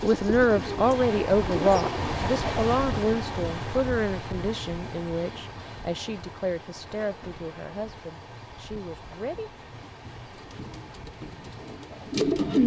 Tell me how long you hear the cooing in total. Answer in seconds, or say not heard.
4 s.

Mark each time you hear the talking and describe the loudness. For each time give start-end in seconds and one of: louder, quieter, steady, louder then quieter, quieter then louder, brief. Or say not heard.
0.0-9.5 quieter.